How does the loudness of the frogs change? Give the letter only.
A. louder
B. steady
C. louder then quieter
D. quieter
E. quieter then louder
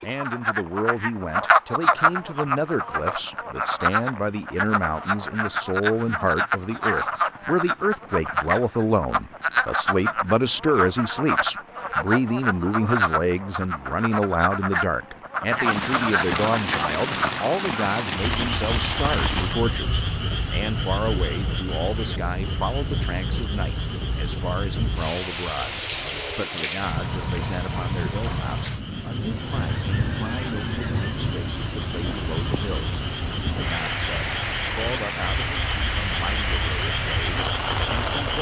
E.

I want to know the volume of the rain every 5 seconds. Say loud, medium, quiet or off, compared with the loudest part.
quiet, quiet, quiet, loud, loud, loud, loud, loud.